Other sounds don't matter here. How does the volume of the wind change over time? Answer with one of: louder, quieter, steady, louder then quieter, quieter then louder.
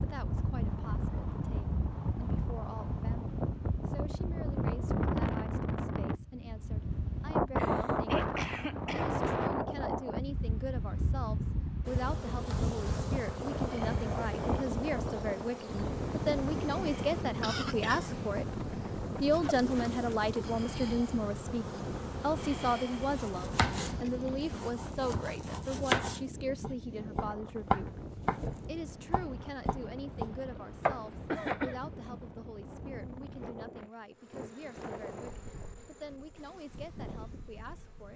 quieter.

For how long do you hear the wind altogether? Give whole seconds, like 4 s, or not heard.
38 s.